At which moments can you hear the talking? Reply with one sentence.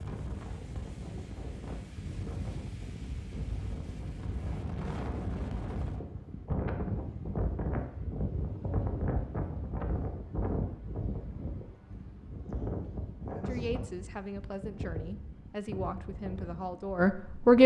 You can hear the talking from 13.4 to 17.6 s.